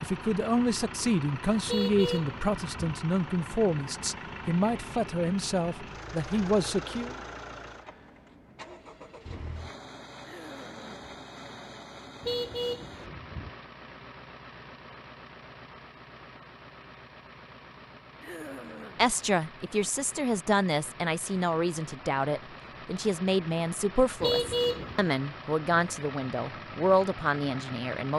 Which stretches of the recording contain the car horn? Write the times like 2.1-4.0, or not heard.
1.6-2.8, 12.2-13.5, 24.2-25.1.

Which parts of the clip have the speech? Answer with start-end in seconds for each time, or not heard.
0.0-7.1, 18.9-28.1.